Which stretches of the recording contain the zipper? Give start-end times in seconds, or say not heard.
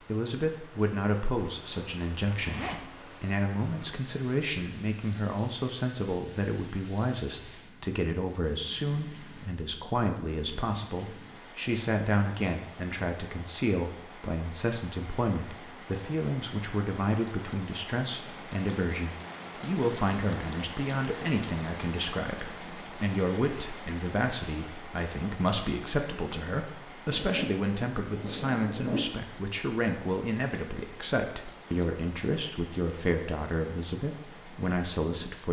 2.3-2.9, 27.1-29.1.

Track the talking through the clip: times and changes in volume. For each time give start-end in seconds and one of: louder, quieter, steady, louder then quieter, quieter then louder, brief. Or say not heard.
0.1-35.4 steady.